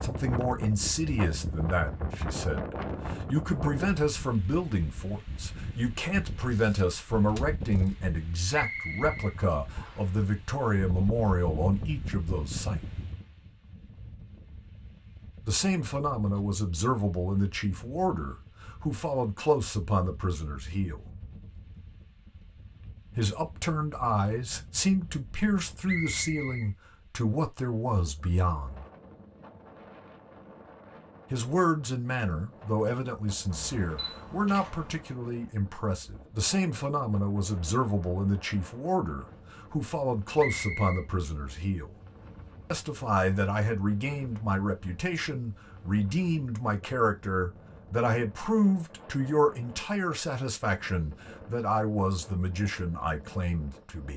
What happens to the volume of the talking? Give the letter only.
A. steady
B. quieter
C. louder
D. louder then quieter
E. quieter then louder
A.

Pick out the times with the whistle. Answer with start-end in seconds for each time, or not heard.
8.5-10.1, 25.9-26.7, 40.4-41.0.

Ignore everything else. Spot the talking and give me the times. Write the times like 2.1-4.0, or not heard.
0.0-12.8, 15.4-21.0, 23.1-28.9, 31.3-41.9, 42.7-54.1.